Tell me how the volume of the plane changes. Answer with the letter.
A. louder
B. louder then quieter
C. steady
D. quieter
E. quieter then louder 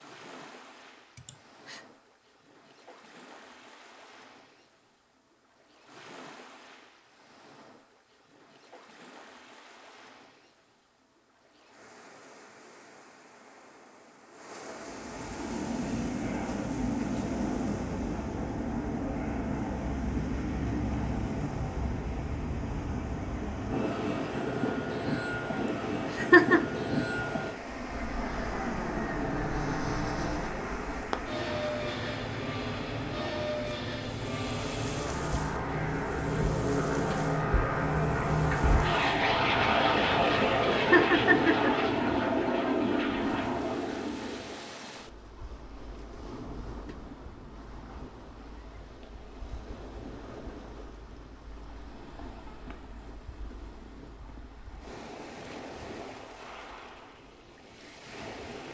A.